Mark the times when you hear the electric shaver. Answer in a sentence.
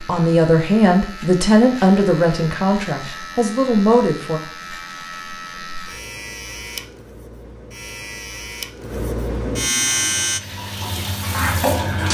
The electric shaver can be heard from 0.0 to 10.4 s.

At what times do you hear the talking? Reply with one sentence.
You can hear the talking from 0.1 to 4.4 s.